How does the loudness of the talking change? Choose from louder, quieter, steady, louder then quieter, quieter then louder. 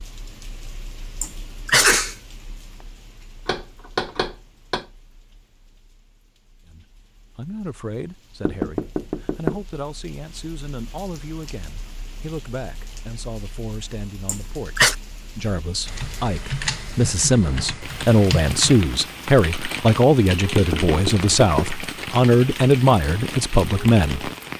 louder.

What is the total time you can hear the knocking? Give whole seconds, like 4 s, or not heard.
4 s.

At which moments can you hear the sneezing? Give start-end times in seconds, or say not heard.
1.2-2.1, 14.2-14.9.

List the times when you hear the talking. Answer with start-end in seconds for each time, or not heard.
6.7-24.3.